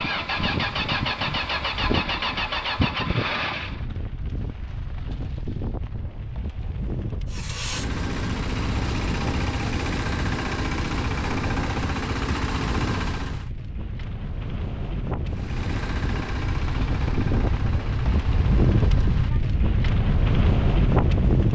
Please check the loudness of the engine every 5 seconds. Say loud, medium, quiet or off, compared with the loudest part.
loud, loud, loud, medium, off.